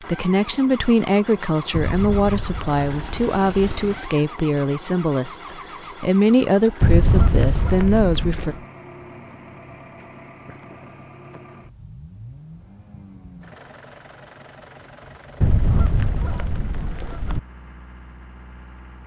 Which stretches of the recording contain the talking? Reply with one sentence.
The talking can be heard from 0.0 to 8.6 s.